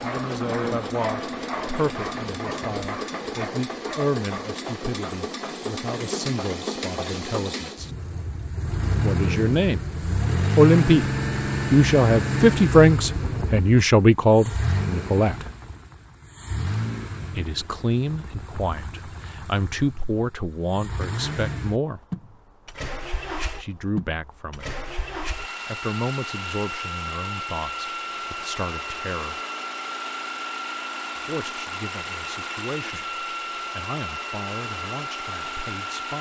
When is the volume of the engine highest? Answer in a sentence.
The volume of the engine peaks at 11 seconds.